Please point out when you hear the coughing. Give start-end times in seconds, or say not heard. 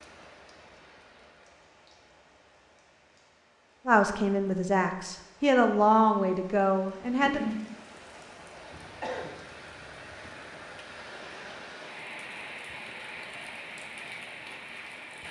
8.7-10.3.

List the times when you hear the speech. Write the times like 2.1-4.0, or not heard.
3.9-7.4.